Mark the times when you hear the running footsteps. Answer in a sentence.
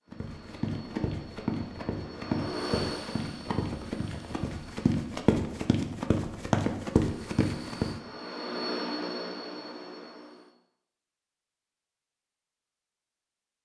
You can hear the running footsteps from 0.1 to 7.9 s.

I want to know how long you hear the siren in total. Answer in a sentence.
You can't hear the siren here.